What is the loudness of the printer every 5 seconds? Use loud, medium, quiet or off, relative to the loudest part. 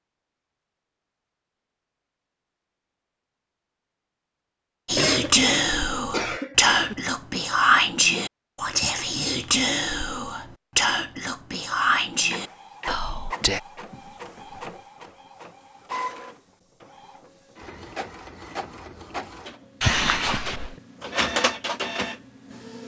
off, off, medium, medium, loud.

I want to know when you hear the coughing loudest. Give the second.
20 s.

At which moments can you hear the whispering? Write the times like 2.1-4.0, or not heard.
4.8-13.6.